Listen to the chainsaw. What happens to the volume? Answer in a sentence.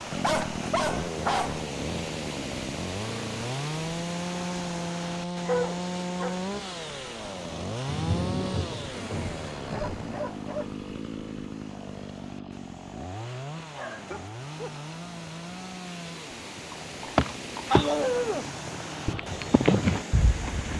The volume of the chainsaw goes down.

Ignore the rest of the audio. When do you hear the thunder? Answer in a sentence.
The thunder can be heard from 7.8 to 10.2 s.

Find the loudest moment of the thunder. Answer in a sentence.
The volume of the thunder peaks at 8 seconds.